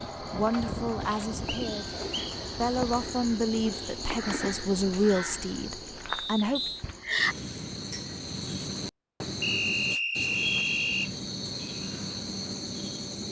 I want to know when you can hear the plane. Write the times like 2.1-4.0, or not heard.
0.0-3.0.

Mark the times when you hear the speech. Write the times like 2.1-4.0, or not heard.
0.3-1.9, 2.5-6.7.